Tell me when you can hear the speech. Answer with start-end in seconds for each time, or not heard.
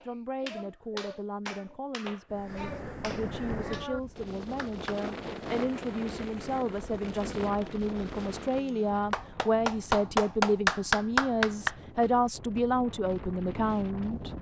0.0-14.3.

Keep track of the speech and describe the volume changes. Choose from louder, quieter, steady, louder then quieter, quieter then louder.
louder.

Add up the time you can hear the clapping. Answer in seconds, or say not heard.
9 s.